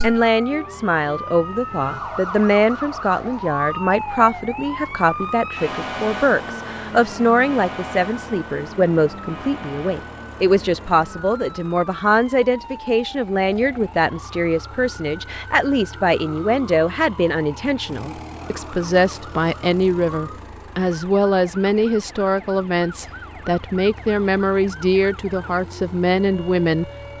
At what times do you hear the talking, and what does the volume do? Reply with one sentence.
You can hear the talking from 0.0 to 26.9 s, at a steady volume.